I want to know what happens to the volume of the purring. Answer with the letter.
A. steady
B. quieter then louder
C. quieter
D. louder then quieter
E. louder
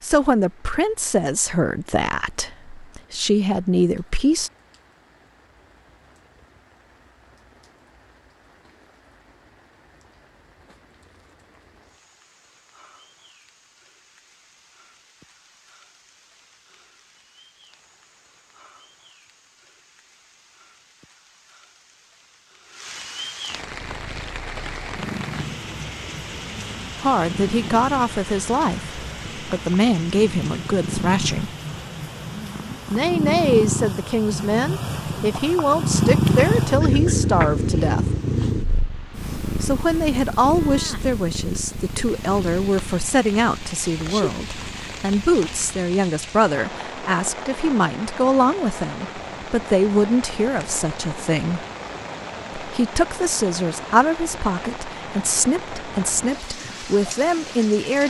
D.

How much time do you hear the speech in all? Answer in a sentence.
You can hear the speech for 32 seconds altogether.